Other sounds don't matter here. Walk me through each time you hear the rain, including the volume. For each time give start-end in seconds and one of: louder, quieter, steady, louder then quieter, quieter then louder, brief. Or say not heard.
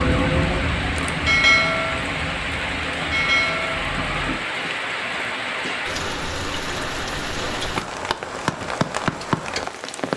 0.0-10.1 steady.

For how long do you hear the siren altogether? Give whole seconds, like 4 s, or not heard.
4 s.